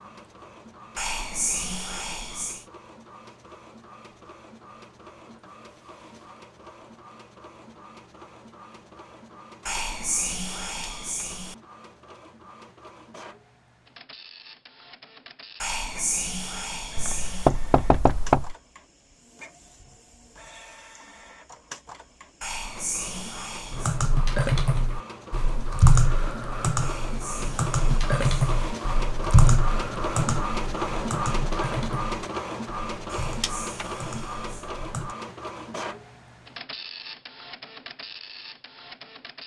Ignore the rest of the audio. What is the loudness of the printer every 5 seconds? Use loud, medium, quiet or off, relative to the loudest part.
quiet, quiet, quiet, quiet, quiet, loud, loud, medium.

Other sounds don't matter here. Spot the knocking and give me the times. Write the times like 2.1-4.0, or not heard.
16.9-18.6.